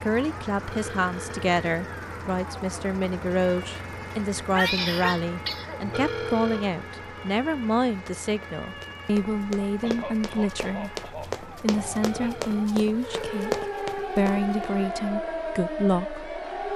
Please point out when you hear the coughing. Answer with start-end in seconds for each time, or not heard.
4.5-5.8, 9.8-12.3.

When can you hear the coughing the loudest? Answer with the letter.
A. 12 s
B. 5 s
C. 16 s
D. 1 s
B.